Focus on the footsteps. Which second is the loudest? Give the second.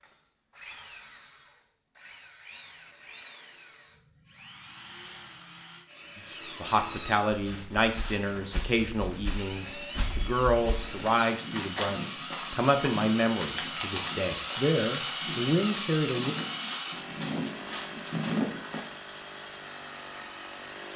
18 s.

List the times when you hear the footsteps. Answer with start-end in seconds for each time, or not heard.
7.3-18.9.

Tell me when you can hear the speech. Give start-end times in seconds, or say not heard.
6.2-16.4.